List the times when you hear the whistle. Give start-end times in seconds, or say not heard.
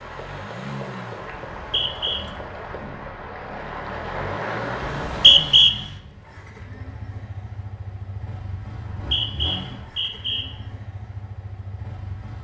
1.5-2.2, 5.0-5.7, 8.7-10.4.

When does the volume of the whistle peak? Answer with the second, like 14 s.
5 s.